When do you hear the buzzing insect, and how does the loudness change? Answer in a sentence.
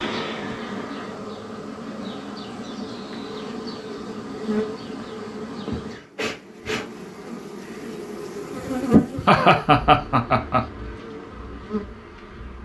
The buzzing insect can be heard from 0.0 to 12.6 s, getting louder then quieter.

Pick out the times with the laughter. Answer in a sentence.
The laughter can be heard from 8.6 to 10.6 s.